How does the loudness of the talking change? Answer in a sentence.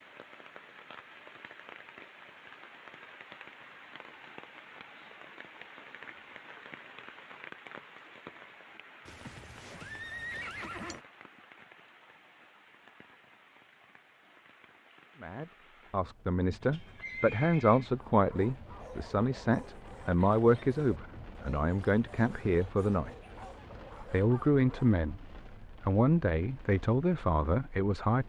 The volume of the talking stays about the same.